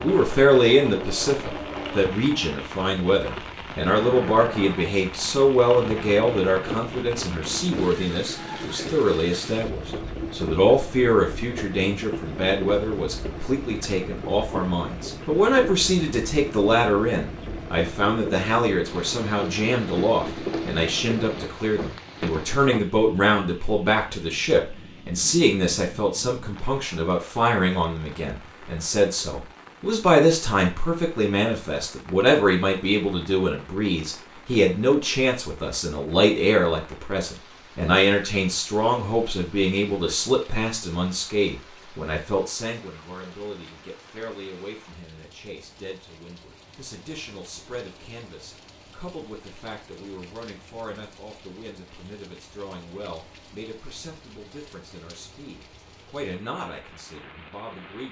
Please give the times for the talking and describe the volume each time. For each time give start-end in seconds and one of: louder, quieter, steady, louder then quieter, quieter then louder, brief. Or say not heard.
0.0-58.0 quieter.